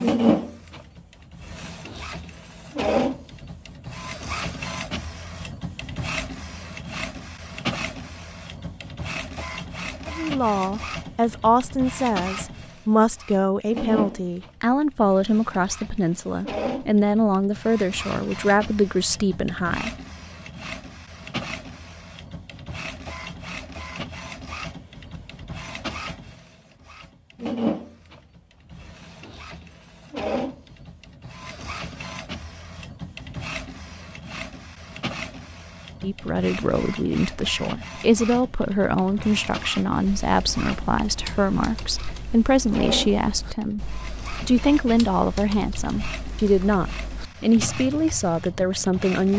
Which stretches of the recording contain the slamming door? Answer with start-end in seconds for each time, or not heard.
not heard.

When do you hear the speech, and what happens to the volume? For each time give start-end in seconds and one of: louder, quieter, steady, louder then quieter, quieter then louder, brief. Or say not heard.
10.1-19.9 steady
36.0-49.3 steady.